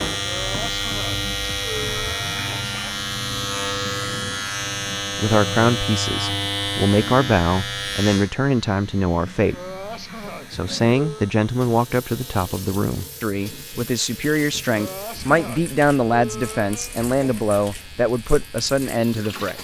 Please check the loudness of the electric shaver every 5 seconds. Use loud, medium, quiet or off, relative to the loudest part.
loud, loud, quiet, quiet.